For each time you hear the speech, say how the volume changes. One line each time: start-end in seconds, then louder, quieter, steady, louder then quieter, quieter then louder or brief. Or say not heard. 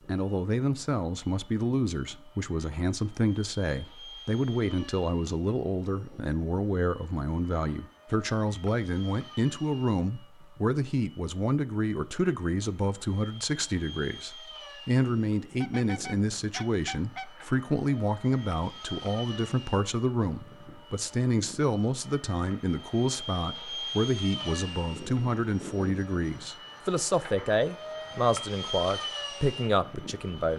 0.1-30.5 steady.